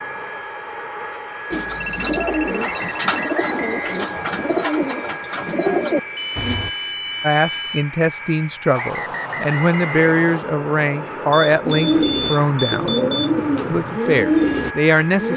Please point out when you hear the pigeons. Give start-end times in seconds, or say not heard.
1.5-6.7, 11.7-15.3.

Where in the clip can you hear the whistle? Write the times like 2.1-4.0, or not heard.
2.5-4.6, 8.7-10.4.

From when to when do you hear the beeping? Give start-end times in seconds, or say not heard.
1.8-3.4, 6.2-7.8, 11.3-13.3.